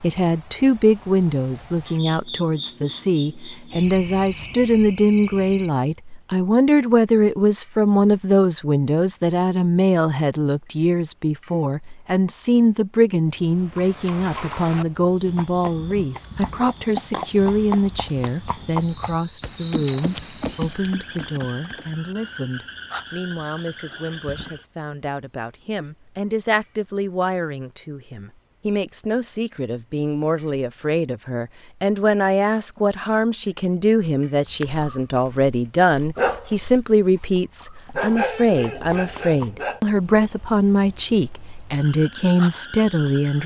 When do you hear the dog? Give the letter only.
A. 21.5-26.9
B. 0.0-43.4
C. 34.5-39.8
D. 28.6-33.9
C.